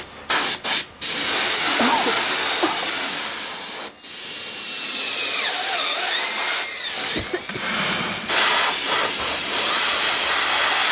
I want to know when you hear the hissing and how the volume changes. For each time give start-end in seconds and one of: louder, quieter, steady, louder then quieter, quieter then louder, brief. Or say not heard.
0.0-10.8 quieter then louder.